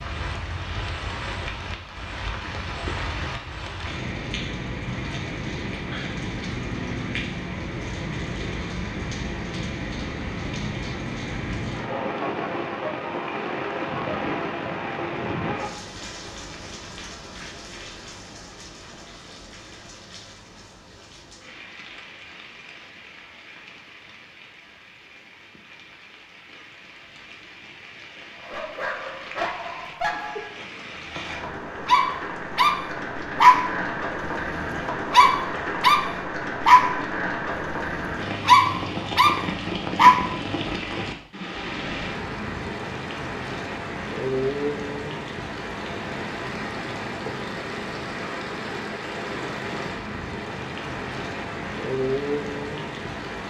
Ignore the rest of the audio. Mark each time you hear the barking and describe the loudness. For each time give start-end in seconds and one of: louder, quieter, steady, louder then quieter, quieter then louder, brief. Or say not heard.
28.4-33.7 quieter then louder
34.5-37.0 brief
37.8-40.2 brief.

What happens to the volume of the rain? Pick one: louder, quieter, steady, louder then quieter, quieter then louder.
quieter then louder.